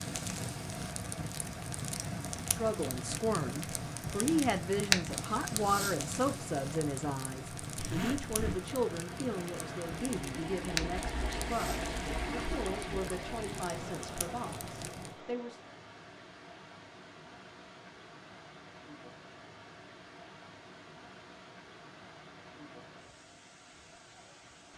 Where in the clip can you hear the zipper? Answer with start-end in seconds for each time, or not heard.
7.8-8.6.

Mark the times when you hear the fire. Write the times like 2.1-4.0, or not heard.
0.0-15.2.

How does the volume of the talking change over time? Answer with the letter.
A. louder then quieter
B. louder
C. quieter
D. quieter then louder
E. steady
C.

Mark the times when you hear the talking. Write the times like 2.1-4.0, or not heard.
2.5-15.6.